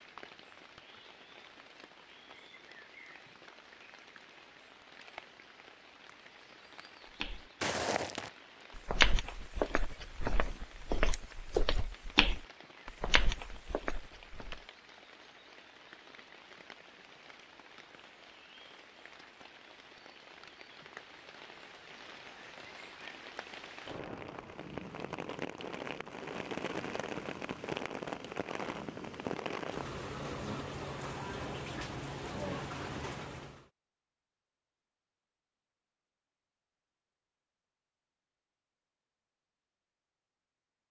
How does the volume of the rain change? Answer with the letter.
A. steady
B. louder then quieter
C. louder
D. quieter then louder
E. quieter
C.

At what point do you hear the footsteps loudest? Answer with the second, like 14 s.
9 s.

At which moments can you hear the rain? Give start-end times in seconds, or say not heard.
0.0-33.6.